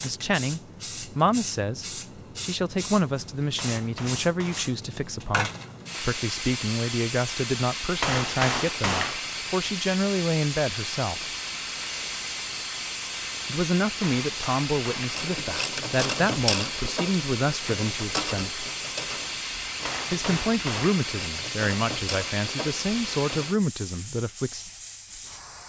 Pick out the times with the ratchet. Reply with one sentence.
The ratchet can be heard from 15.1 to 23.5 s.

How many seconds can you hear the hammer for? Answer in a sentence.
The hammer can be heard for 5 seconds in total.